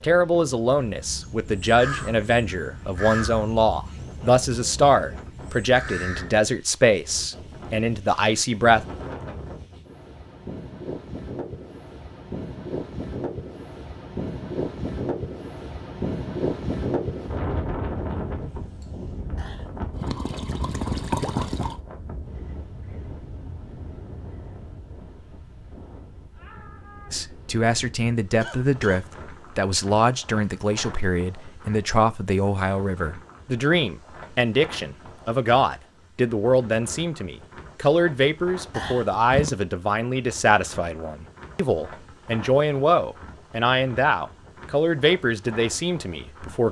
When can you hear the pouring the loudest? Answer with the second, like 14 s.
21 s.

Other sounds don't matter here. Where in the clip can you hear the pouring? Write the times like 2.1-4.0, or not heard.
19.4-21.8, 38.7-39.5.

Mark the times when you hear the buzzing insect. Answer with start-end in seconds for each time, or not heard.
not heard.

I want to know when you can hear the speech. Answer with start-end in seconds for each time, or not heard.
0.0-8.8, 27.1-46.6.